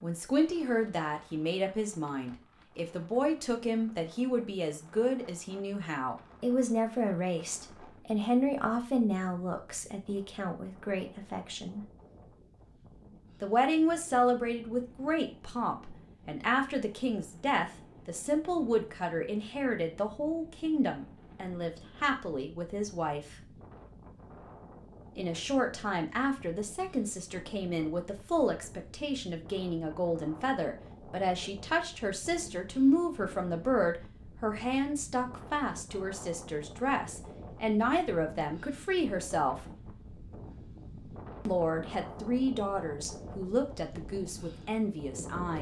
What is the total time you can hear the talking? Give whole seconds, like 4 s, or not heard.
40 s.